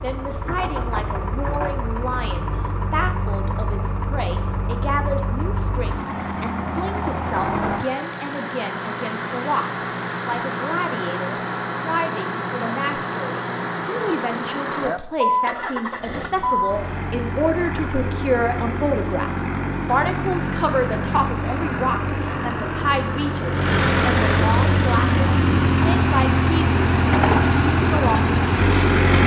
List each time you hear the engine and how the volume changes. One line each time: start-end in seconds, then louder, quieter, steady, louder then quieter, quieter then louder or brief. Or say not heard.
0.0-29.2 louder.